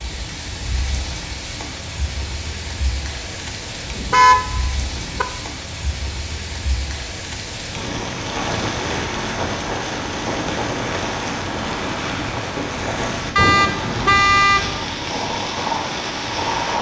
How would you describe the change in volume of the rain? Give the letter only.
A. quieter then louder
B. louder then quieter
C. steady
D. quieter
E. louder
E.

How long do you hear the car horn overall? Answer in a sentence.
The car horn can be heard for 3 seconds in total.